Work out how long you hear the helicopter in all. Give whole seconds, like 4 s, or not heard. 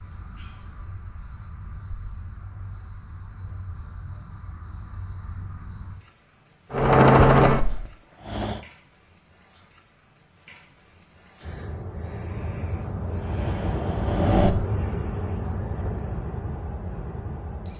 3 s.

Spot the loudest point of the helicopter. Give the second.
7 s.